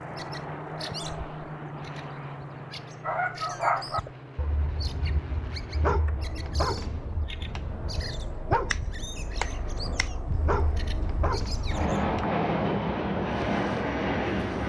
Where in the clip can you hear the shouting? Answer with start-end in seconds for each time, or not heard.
not heard.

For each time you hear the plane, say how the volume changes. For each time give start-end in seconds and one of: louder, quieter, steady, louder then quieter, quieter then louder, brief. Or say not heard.
0.0-14.6 quieter then louder.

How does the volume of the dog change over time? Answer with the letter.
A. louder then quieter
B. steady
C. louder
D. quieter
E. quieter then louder
E.